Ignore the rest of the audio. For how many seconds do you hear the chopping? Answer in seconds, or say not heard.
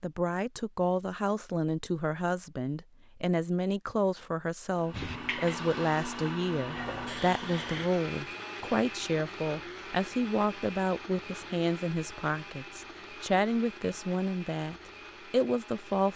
not heard.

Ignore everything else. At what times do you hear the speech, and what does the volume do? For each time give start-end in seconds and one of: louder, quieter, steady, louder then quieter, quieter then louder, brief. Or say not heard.
0.0-16.1 steady.